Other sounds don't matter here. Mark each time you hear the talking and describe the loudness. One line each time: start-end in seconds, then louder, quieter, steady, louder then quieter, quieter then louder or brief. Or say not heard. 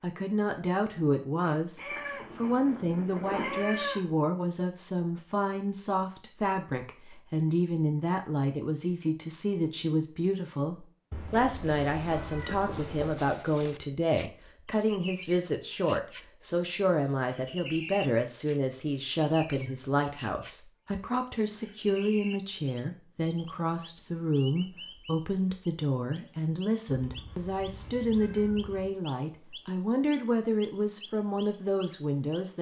0.0-32.5 steady.